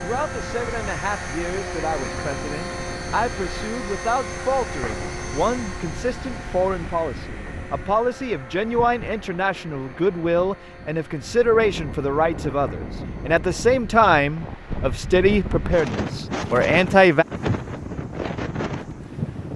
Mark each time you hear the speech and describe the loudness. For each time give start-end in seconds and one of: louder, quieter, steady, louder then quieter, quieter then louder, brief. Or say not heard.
0.0-17.2 louder.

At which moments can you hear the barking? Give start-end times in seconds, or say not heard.
not heard.